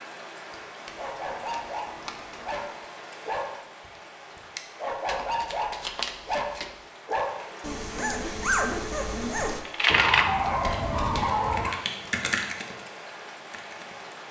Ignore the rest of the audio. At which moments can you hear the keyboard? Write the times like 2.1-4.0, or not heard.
10.4-14.1.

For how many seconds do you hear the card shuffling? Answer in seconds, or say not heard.
4 s.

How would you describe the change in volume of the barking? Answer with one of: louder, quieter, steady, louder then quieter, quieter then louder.
louder.